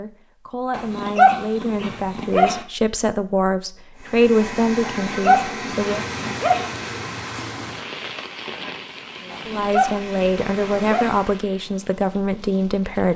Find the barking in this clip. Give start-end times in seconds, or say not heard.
0.8-2.6, 4.8-6.7, 9.3-11.2.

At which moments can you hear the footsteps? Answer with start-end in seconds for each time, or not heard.
not heard.